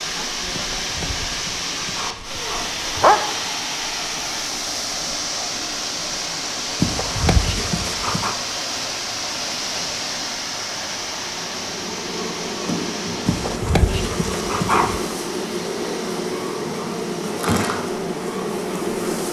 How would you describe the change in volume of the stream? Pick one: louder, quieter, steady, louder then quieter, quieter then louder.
quieter.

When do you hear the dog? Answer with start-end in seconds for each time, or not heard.
0.6-3.2, 6.8-8.3, 13.2-15.0.